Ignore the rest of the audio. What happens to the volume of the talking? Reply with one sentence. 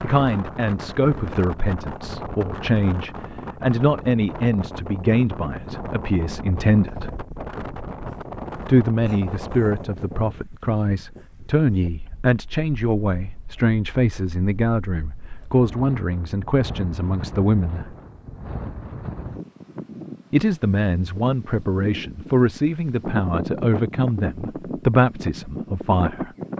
The volume of the talking stays about the same.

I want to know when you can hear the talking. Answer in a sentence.
You can hear the talking from 0.0 to 7.2 s, from 8.7 to 17.9 s and from 20.3 to 26.3 s.